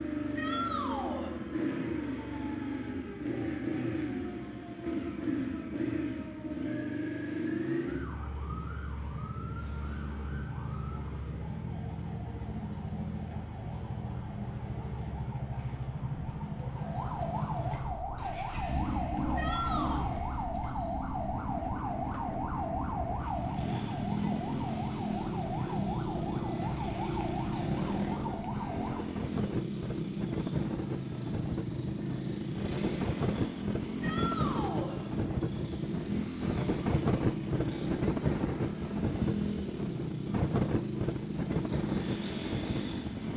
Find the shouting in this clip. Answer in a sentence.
You can hear the shouting from 0.3 to 1.3 s, from 19.4 to 20.1 s and from 34.0 to 35.0 s.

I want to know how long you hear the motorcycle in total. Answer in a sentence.
You can hear the motorcycle for 43 seconds altogether.